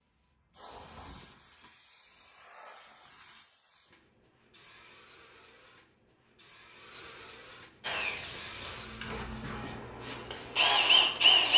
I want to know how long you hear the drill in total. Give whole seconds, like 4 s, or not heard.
4 s.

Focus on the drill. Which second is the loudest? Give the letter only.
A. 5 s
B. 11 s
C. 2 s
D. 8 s
B.